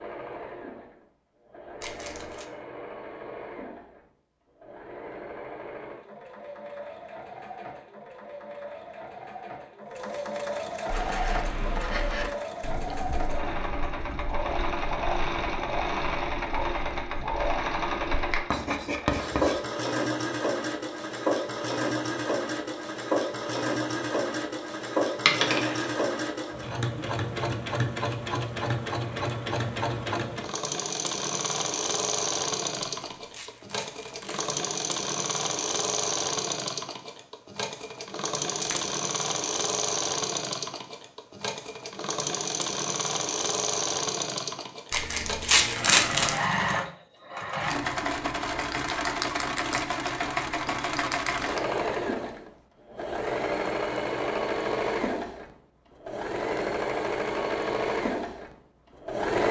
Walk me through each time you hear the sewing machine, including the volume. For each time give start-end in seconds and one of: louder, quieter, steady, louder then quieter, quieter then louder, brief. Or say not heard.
0.0-59.4 louder.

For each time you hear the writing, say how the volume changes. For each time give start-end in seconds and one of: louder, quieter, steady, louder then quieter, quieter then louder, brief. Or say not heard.
10.9-19.6 quieter then louder.